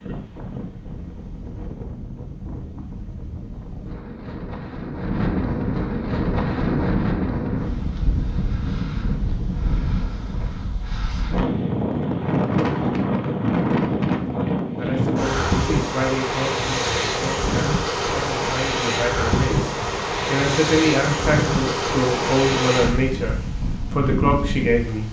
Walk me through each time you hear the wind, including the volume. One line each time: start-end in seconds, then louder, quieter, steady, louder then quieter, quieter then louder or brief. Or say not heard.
0.0-25.0 louder.